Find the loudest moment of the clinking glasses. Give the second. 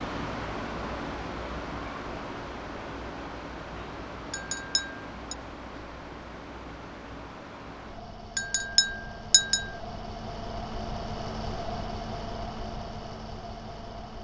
9 s.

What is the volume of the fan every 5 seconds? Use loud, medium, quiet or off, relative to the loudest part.
loud, medium, loud.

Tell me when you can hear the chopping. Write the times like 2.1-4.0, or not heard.
not heard.